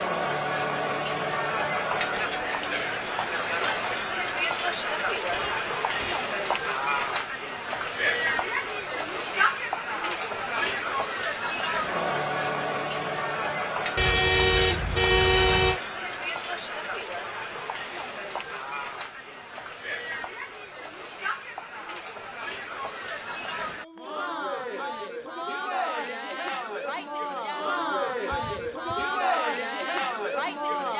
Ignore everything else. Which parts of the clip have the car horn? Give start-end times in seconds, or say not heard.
5.2-6.3, 13.9-15.8, 28.3-29.2.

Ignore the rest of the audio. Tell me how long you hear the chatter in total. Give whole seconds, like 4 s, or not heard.
31 s.